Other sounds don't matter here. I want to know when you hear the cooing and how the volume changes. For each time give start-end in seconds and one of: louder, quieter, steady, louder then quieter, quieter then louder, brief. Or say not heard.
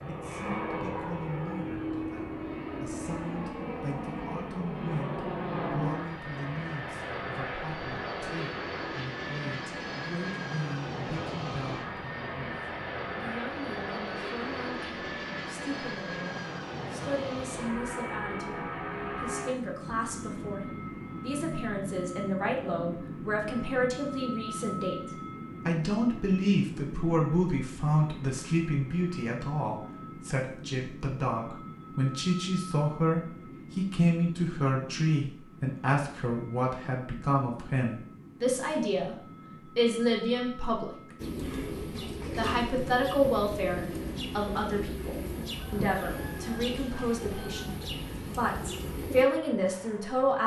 41.1-49.2 steady.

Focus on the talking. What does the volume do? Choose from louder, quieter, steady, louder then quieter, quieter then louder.
louder.